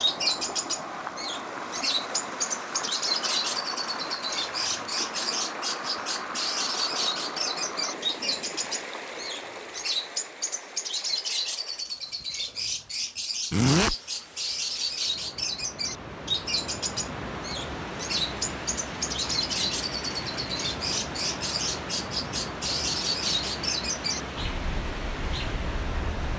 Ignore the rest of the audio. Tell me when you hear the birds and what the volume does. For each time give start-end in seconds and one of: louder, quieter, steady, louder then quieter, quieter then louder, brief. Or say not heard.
0.0-26.3 steady.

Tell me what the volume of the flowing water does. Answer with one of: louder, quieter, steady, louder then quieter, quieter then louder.
quieter then louder.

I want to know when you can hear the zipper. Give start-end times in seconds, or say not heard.
13.5-13.9.